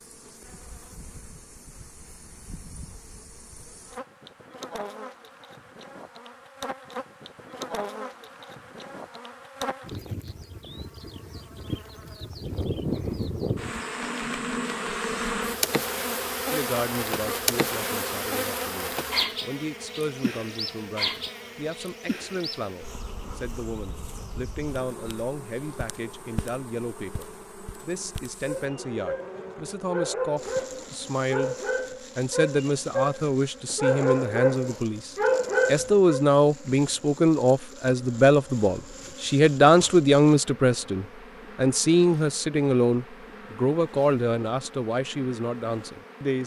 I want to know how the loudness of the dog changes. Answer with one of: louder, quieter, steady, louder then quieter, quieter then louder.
louder.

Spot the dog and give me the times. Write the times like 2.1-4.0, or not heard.
28.4-36.2.